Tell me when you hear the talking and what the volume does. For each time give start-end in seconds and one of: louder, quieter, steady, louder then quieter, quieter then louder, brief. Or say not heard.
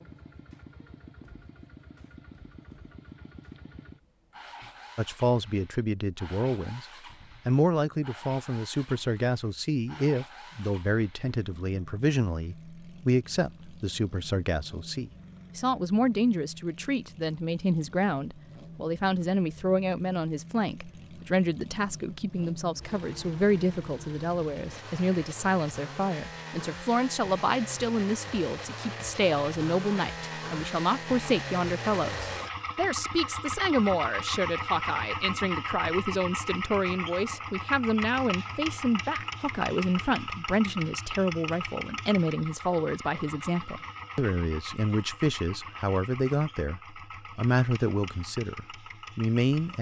5.0-6.8 brief
7.5-49.7 steady.